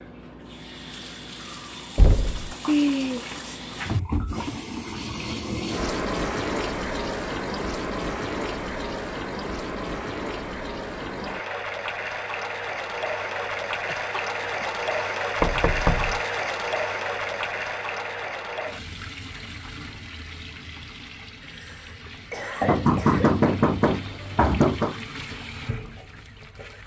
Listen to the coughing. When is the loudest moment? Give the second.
3 s.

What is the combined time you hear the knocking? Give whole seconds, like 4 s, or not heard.
4 s.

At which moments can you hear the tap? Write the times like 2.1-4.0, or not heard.
0.0-26.8.